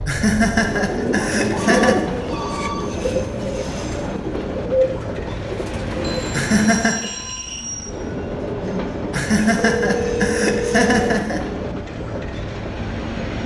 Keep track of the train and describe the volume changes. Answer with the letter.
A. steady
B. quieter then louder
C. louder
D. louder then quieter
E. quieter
A.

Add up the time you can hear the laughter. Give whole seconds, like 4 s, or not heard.
5 s.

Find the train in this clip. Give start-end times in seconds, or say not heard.
0.0-13.4.